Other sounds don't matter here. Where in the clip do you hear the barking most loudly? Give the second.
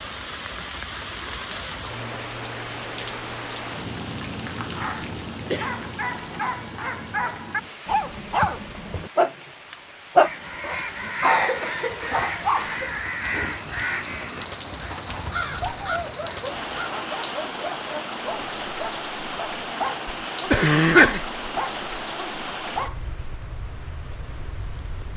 10 s.